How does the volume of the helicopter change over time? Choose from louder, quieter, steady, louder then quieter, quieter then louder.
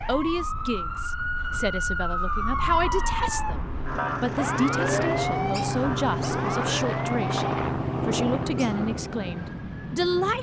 steady.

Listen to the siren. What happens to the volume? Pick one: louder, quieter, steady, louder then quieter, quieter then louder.
quieter.